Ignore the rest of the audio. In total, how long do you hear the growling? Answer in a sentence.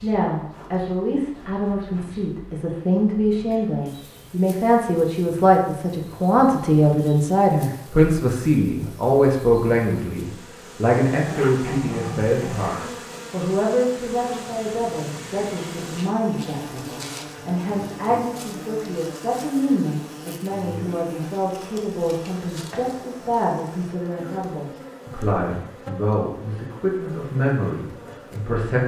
The growling can be heard for 2 seconds in total.